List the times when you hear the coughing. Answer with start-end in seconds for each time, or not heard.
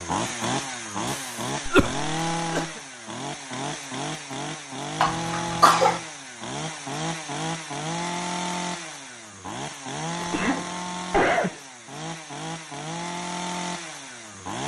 1.6-2.6, 5.0-6.0, 10.2-11.6.